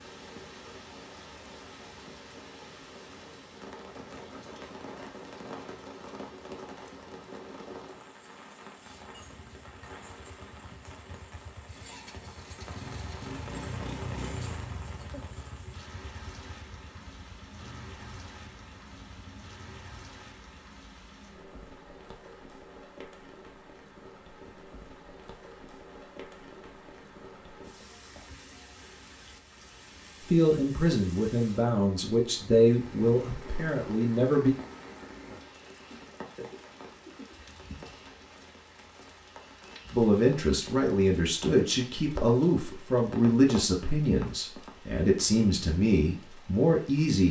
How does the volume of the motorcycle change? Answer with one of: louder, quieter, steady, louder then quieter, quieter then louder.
louder then quieter.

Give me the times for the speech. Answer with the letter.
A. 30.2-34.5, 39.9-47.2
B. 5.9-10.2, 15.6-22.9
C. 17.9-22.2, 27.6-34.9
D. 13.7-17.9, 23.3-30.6
A.